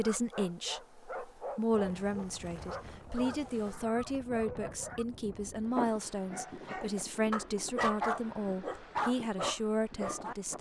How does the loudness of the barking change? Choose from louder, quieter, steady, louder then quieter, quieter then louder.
louder.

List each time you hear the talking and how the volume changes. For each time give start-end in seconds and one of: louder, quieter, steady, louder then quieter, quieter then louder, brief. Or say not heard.
0.0-10.5 steady.